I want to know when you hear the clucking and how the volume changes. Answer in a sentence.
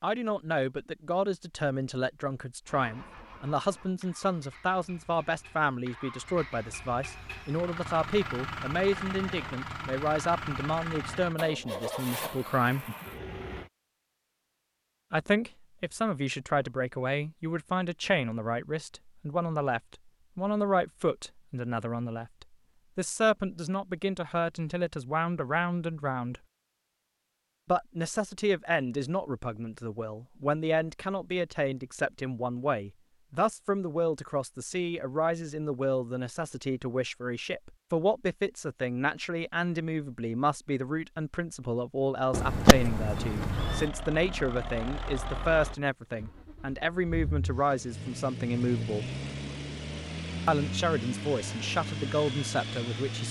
You can't hear the clucking here.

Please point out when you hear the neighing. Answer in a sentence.
You can hear the neighing from 42.3 to 43.9 s.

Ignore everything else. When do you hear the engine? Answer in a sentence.
The engine can be heard from 2.6 to 13.7 s and from 43.5 to 53.2 s.